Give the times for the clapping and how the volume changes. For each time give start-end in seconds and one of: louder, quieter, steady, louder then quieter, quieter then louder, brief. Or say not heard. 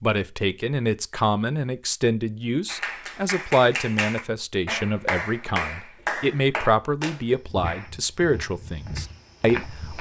2.6-7.8 steady.